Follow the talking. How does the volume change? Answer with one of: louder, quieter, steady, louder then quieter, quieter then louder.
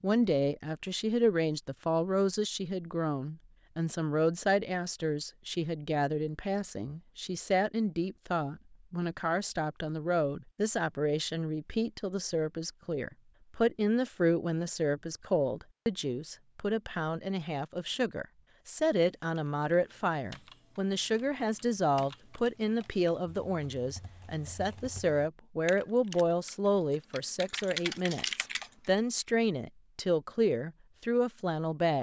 steady.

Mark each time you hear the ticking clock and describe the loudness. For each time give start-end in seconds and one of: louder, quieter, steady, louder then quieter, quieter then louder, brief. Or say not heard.
not heard.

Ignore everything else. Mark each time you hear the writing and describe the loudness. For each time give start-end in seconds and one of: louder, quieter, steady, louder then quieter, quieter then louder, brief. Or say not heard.
not heard.